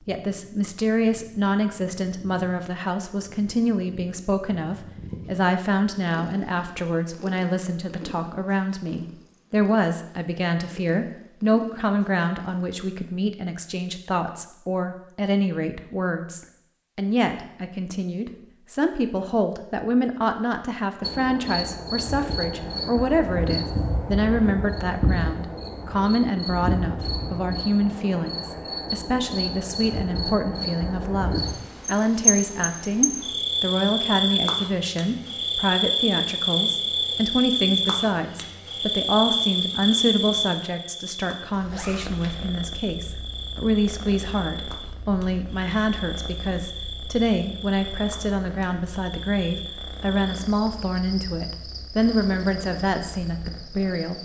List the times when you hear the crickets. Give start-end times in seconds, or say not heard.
21.0-54.2.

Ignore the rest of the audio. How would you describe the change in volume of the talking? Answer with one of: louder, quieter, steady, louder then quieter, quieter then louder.
steady.